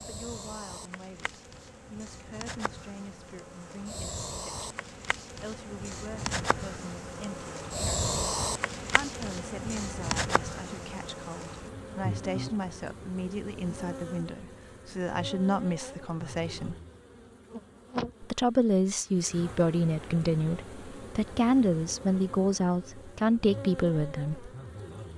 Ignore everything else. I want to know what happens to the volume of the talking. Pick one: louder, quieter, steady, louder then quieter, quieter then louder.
louder.